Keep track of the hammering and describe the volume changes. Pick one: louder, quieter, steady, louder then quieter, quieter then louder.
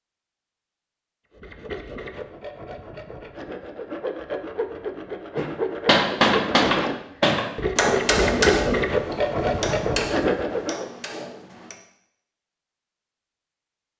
quieter.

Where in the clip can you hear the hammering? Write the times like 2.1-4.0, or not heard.
5.3-11.8.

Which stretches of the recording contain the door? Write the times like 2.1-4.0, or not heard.
not heard.